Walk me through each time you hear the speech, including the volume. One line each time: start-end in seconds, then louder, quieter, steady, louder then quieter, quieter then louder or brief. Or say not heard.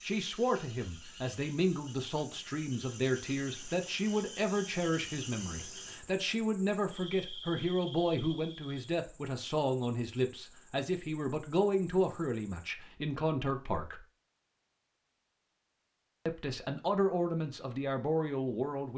0.0-14.1 steady
16.2-18.9 brief.